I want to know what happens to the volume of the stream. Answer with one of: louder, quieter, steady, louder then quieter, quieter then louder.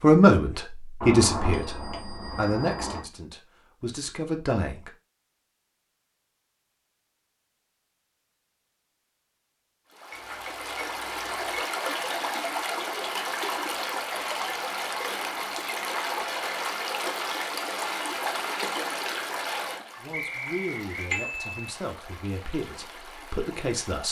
quieter.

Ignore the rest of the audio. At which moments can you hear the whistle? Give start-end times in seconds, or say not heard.
20.1-21.1.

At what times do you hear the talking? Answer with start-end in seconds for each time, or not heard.
0.0-4.9, 19.9-24.0.